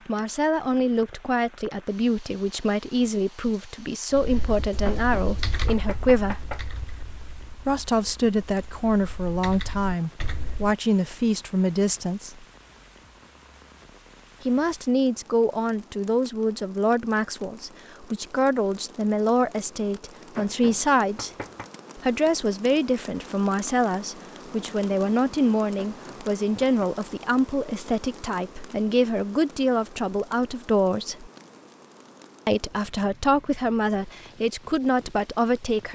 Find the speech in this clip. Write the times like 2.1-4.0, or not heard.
0.1-6.5, 7.7-12.4, 14.4-21.3, 21.9-31.3, 32.5-35.9.